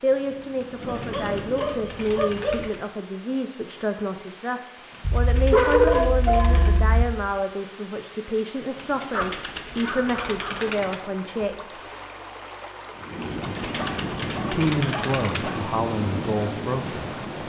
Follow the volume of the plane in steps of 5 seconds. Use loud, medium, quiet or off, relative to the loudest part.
medium, off, loud, loud.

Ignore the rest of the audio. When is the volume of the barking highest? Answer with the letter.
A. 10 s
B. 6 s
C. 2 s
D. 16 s
B.